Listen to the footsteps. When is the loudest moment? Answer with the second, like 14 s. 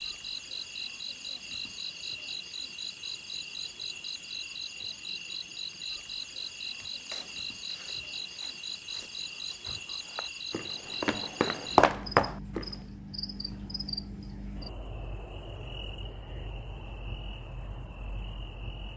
12 s.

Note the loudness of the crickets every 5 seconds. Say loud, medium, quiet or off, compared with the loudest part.
loud, loud, loud, medium.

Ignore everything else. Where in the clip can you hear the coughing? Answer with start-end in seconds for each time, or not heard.
not heard.